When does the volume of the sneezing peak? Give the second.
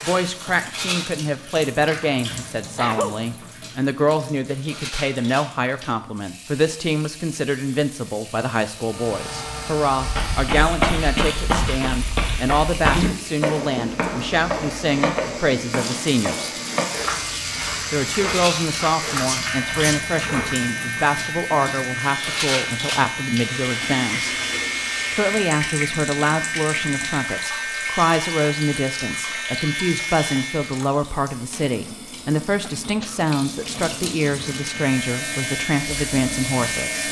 3 s.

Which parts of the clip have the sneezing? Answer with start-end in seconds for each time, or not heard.
2.5-3.1, 19.1-20.0, 32.5-33.2.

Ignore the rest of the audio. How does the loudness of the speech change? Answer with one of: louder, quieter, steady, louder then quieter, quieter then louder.
steady.